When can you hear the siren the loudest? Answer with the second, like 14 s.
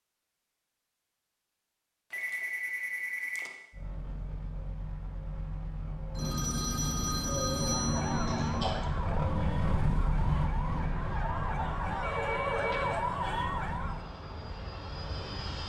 13 s.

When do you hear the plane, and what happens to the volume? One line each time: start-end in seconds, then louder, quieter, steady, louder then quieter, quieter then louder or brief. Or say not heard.
3.7-15.6 louder then quieter.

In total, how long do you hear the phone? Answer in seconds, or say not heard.
5 s.